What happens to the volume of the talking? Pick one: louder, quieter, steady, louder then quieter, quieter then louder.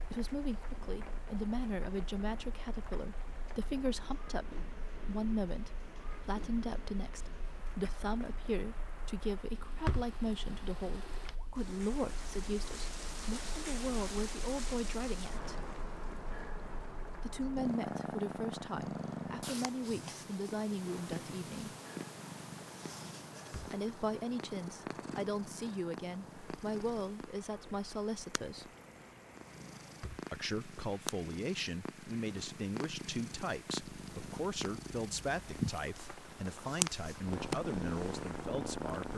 steady.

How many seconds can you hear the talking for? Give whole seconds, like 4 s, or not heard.
34 s.